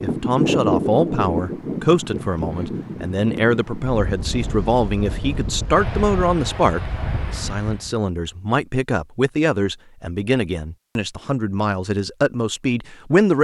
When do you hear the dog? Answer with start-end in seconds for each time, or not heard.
not heard.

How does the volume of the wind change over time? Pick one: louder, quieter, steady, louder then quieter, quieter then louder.
quieter.